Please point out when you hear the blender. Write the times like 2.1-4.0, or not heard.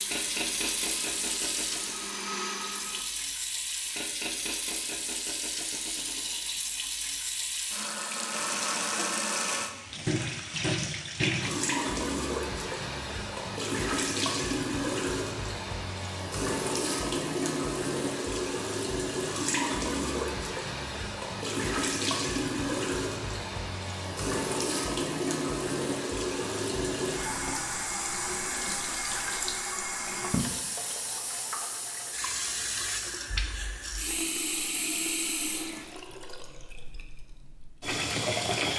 0.0-3.0.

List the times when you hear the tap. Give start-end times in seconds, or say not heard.
0.0-38.7.